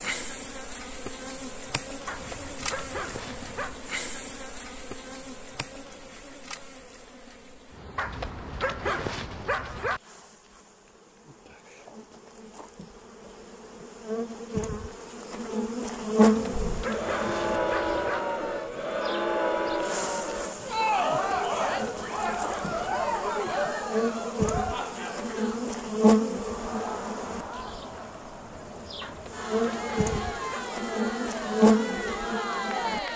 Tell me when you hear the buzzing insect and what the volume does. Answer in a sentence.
The buzzing insect can be heard from 0.0 to 33.1 s, getting quieter then louder.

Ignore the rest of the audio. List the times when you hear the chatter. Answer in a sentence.
The chatter can be heard from 16.5 to 33.1 s.